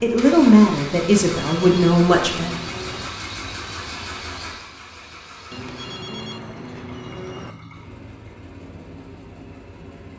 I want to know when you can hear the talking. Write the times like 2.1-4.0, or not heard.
0.0-2.5.